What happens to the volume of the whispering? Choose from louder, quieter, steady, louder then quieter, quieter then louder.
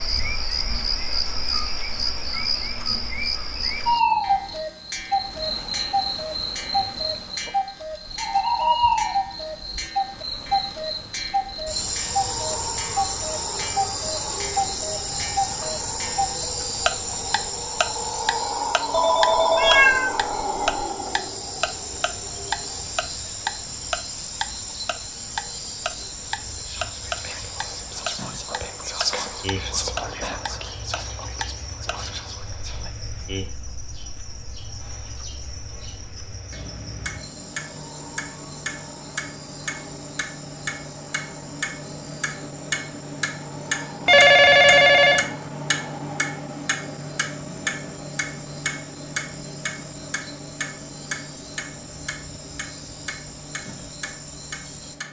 louder then quieter.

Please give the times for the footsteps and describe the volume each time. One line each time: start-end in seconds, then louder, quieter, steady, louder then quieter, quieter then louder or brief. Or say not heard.
not heard.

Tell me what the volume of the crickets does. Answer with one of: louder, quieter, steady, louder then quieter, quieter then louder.
quieter.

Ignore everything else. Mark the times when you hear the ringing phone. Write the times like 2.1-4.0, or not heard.
18.9-20.9, 44.0-45.2.